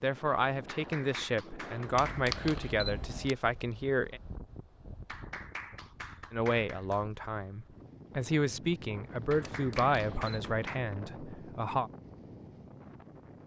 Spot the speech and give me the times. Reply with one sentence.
The speech can be heard from 0.0 to 4.2 s and from 6.3 to 11.9 s.